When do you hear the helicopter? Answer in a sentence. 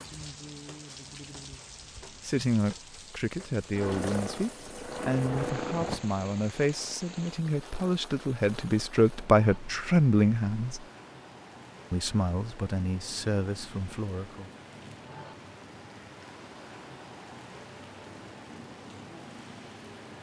You can hear the helicopter from 3.7 to 6.0 s.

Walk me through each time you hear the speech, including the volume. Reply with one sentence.
You can hear the speech from 2.2 to 10.8 s, getting louder; and briefly from 11.9 to 14.5 s.